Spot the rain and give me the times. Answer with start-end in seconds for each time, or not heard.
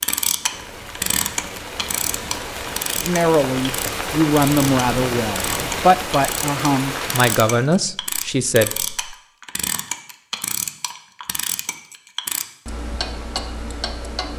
0.1-7.7.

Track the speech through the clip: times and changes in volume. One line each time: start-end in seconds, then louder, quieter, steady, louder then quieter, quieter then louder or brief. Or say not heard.
3.0-9.2 steady.